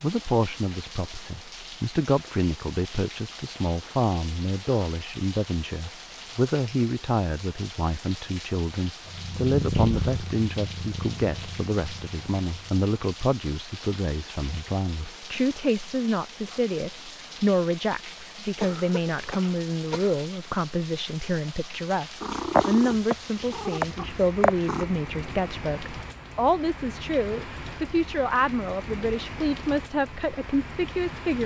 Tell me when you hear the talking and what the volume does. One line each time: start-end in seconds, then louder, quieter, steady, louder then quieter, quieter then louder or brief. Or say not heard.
0.0-31.4 steady.